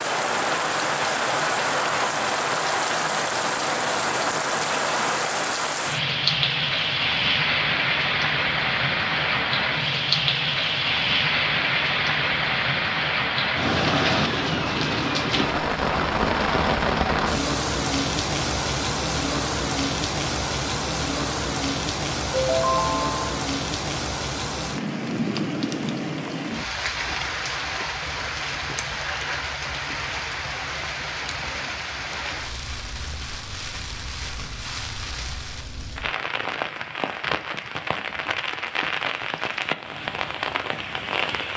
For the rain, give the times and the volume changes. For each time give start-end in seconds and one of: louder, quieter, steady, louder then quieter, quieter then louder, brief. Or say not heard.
0.0-41.5 quieter.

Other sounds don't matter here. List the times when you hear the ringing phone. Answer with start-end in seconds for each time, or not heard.
22.4-23.4.